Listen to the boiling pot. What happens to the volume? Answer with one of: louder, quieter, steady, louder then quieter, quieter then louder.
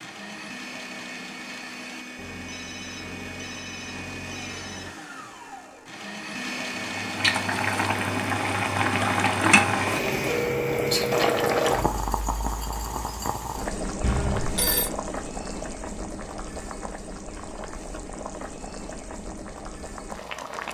quieter.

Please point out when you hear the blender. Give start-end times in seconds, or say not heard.
0.0-10.6.